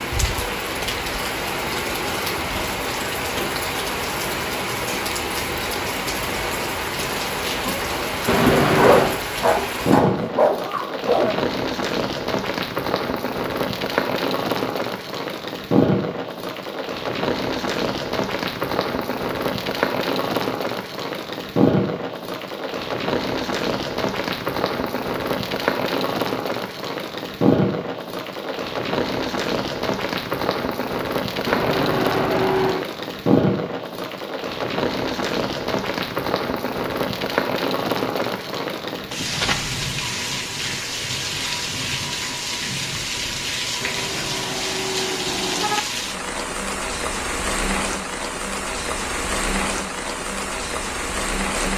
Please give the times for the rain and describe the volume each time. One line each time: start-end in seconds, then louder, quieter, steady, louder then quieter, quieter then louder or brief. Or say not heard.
0.0-51.7 steady.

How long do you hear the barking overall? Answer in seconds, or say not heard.
3 s.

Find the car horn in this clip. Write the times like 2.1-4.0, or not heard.
8.2-9.2, 31.4-32.9, 43.8-45.8.